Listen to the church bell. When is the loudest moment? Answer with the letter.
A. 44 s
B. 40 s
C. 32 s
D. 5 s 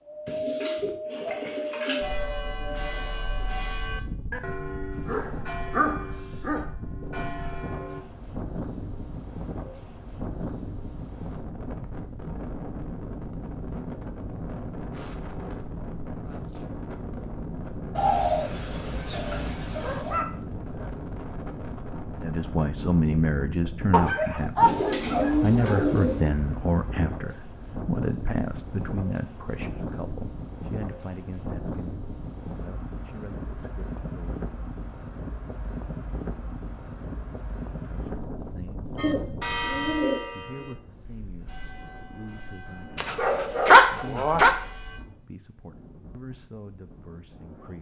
B.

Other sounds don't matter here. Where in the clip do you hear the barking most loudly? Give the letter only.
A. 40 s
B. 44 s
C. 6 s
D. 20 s
B.